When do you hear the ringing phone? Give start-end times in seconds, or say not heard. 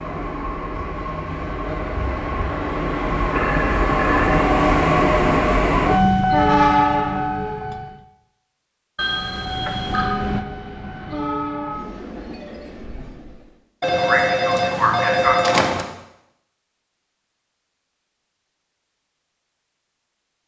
3.2-4.4, 8.9-10.2, 13.8-15.8.